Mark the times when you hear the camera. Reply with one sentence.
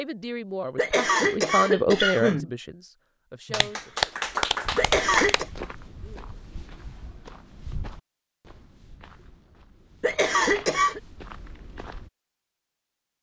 The camera can't be heard in this clip.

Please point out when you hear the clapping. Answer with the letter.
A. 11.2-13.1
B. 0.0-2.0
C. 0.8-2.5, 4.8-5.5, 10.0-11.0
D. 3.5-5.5
D.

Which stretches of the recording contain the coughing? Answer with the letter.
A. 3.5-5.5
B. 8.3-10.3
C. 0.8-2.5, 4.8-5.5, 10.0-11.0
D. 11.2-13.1
C.